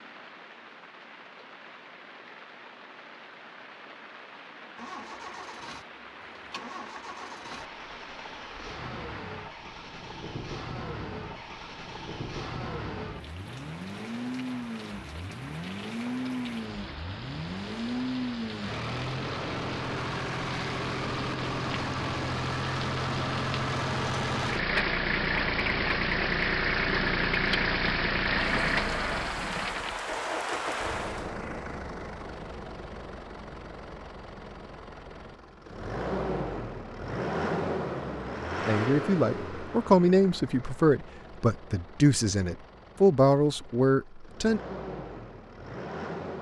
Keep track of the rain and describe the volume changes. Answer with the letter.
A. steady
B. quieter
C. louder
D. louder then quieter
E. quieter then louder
C.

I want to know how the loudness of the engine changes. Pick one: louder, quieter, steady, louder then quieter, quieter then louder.
louder then quieter.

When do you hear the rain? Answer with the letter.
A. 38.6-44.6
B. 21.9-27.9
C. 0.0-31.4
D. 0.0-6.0
C.